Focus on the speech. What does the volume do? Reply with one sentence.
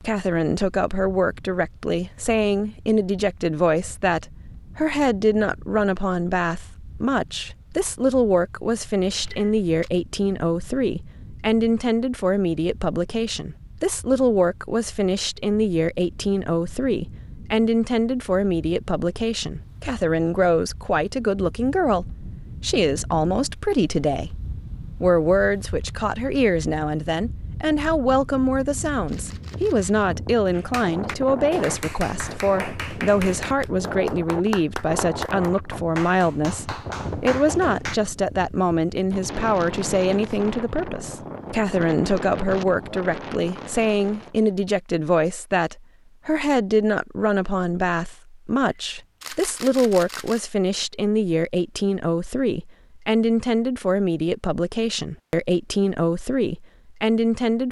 The volume of the speech stays about the same.